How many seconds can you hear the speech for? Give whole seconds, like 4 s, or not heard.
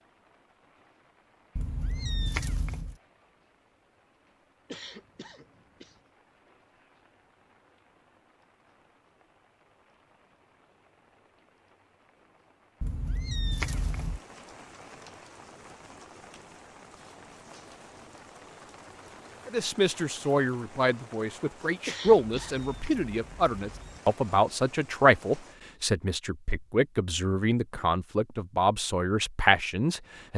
11 s.